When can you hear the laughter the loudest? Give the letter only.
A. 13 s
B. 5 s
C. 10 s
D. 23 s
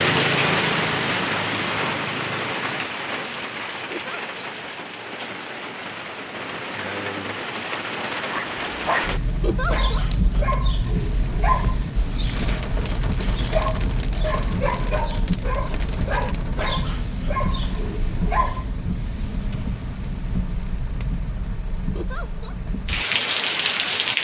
C.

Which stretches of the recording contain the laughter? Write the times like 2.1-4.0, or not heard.
3.9-4.5, 9.4-10.1, 21.9-22.6.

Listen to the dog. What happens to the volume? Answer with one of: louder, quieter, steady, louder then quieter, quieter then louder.
steady.